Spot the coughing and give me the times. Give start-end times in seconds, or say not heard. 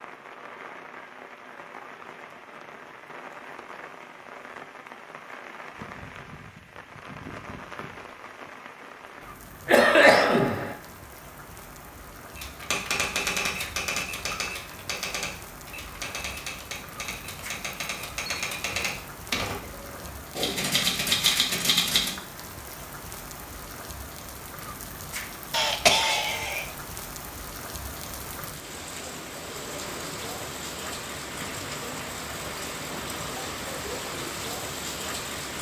9.7-10.8, 25.5-26.6.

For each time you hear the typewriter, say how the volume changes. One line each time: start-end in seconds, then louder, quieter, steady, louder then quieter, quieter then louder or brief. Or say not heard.
12.3-22.2 quieter then louder.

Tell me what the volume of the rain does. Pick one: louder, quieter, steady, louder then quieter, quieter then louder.
louder.